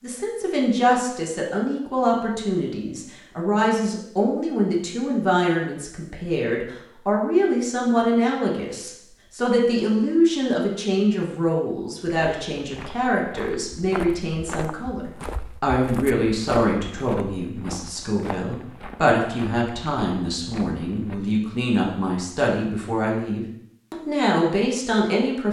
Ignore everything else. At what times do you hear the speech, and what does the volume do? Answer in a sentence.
The speech can be heard from 0.0 to 25.4 s, at a steady volume.